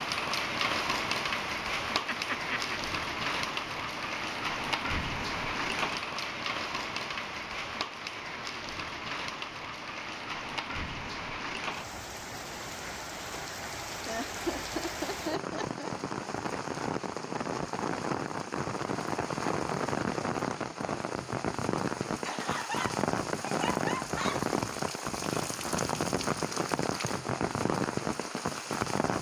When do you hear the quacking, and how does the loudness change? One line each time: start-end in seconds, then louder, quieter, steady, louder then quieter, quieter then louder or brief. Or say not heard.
not heard.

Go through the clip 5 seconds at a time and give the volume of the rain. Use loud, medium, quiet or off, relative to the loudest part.
loud, loud, medium, loud, loud, loud.